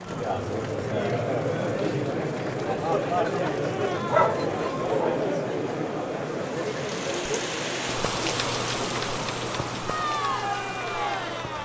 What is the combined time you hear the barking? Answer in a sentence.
You can hear the barking for 2 seconds altogether.